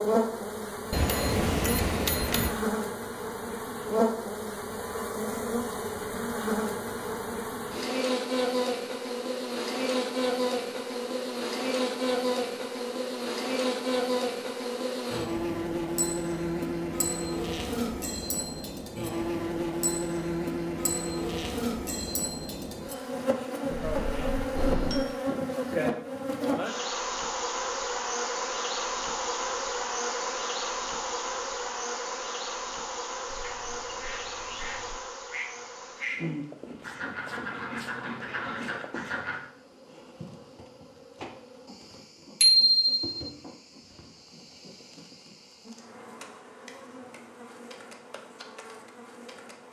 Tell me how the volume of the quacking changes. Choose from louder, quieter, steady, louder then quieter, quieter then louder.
louder.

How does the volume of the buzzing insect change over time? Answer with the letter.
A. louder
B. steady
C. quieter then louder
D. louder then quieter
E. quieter
E.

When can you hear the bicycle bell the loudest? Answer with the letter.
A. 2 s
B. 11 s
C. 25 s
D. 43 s
D.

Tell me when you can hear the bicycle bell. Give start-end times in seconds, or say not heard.
0.9-2.5, 23.7-25.1, 42.4-43.0.